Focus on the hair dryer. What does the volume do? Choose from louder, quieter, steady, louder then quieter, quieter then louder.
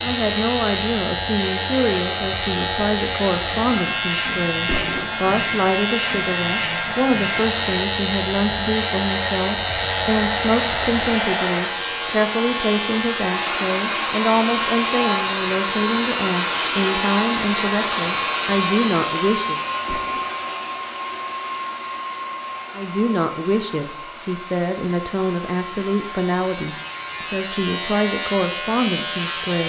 louder then quieter.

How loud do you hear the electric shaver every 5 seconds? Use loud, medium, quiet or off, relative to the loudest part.
loud, loud, loud, loud, quiet, loud.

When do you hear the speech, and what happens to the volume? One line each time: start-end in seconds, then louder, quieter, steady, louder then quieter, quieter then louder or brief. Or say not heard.
0.0-19.6 steady
22.8-29.6 steady.